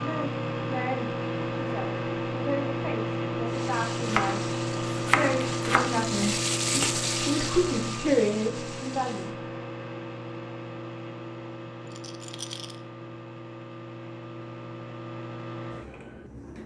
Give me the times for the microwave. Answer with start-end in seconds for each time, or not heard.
0.0-16.6.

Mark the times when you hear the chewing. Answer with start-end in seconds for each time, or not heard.
not heard.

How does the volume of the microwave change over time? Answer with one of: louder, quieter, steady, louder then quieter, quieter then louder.
quieter.